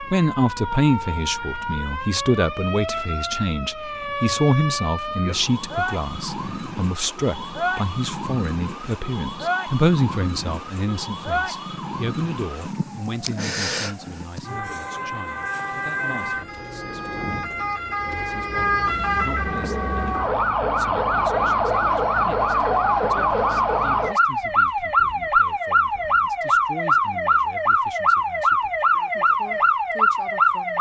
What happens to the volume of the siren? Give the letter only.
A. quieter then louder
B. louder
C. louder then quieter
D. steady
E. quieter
B.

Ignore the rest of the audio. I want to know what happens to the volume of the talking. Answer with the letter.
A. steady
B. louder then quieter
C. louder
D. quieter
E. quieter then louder
D.